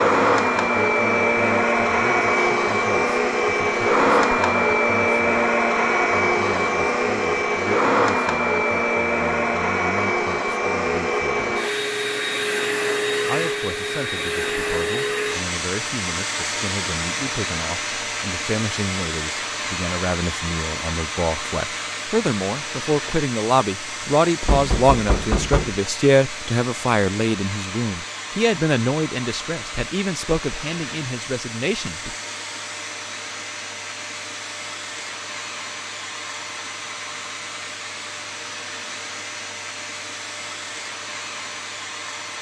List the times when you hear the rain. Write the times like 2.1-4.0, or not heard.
not heard.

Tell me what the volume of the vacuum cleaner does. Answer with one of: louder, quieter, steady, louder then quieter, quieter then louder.
quieter.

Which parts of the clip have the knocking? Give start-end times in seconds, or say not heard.
24.4-25.8.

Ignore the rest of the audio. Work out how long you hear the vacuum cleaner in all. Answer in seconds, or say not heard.
42 s.